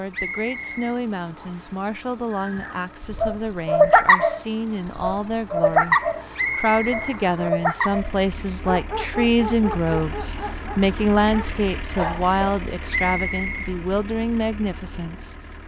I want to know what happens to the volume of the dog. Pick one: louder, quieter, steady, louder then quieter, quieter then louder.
quieter.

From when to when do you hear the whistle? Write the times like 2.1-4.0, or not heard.
0.1-1.7, 6.3-8.0, 12.9-13.8.